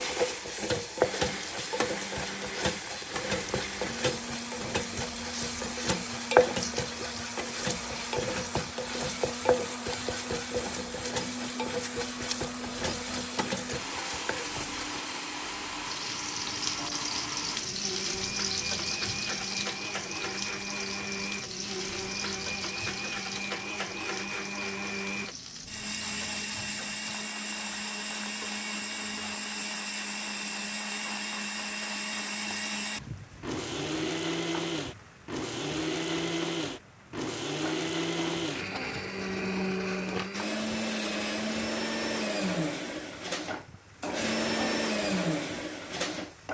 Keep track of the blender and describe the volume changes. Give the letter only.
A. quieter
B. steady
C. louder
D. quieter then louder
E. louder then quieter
C.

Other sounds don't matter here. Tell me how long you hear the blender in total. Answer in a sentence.
You can hear the blender for 46 seconds altogether.